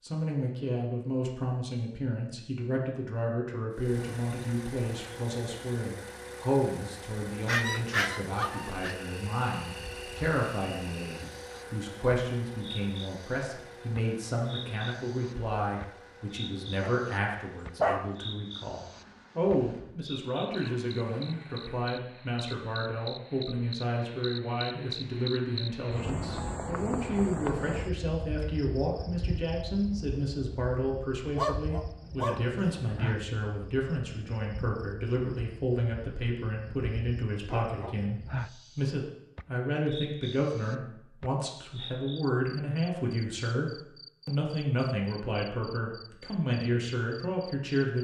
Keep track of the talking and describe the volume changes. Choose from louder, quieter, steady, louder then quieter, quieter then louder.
steady.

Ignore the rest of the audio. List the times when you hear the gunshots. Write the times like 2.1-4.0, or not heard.
not heard.